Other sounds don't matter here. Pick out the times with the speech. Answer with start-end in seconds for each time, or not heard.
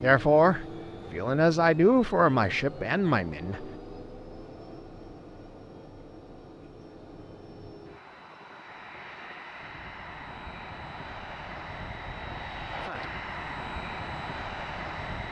0.0-3.6.